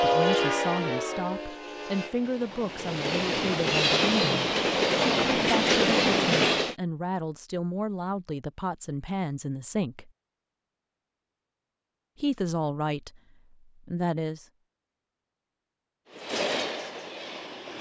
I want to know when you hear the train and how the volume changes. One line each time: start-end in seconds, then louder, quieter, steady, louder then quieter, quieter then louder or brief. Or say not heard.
0.0-6.8 quieter then louder
16.1-17.7 brief.